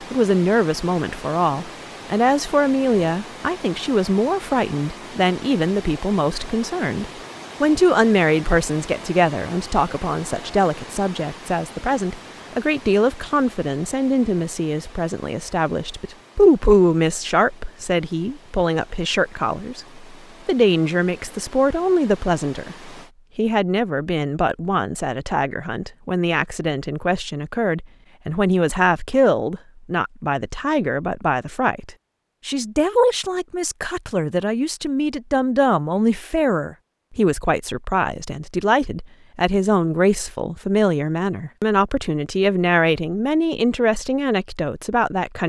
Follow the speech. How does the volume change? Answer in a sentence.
The loudness of the speech stays about the same.